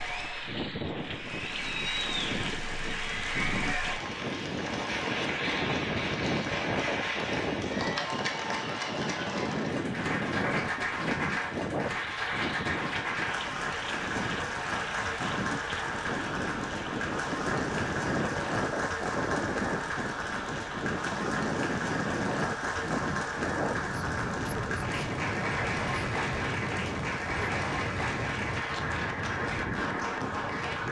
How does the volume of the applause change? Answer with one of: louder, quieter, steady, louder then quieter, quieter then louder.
steady.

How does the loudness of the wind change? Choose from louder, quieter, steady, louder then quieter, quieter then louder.
steady.